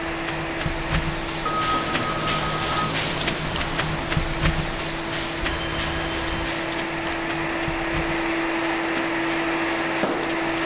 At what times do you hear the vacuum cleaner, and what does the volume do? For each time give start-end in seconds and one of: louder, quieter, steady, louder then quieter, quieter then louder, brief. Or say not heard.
0.0-10.6 louder.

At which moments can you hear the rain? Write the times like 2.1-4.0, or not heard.
0.0-10.6.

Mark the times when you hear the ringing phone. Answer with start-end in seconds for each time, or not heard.
1.4-3.0, 5.4-6.5.